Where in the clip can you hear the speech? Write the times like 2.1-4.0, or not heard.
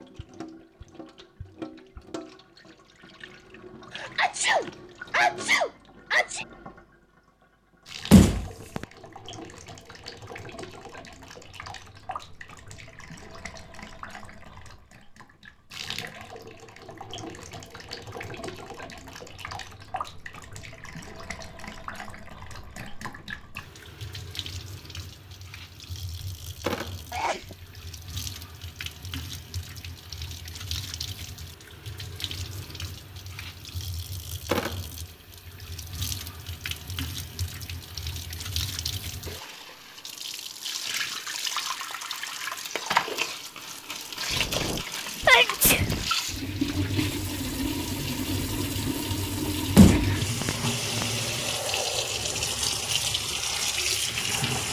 not heard.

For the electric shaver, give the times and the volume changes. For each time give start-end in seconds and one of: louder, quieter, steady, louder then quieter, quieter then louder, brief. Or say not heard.
not heard.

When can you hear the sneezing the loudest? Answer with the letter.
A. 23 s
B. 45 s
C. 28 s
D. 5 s
B.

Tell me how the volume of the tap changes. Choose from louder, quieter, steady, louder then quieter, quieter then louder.
louder.